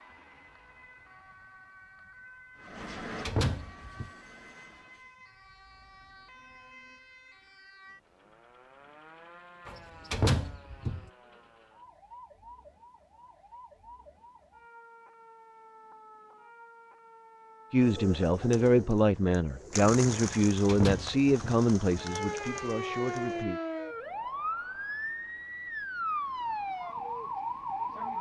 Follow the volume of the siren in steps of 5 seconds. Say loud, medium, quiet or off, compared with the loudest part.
quiet, quiet, quiet, quiet, loud, loud.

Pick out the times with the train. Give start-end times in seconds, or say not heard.
2.5-5.2.